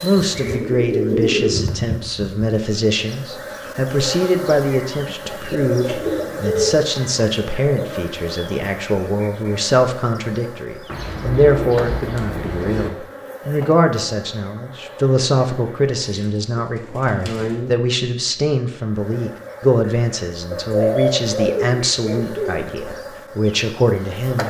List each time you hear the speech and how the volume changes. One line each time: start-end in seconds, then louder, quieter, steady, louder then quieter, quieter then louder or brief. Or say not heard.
0.0-24.4 steady.